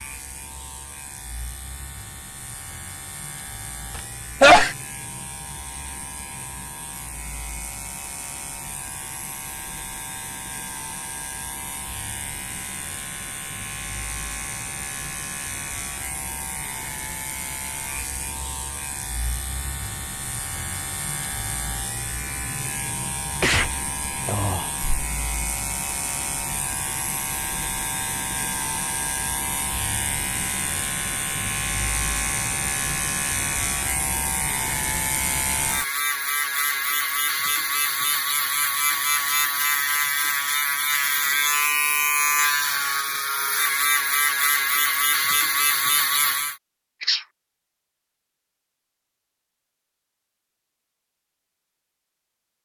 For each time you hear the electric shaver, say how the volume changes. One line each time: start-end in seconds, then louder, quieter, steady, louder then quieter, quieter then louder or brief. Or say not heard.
0.0-46.5 louder.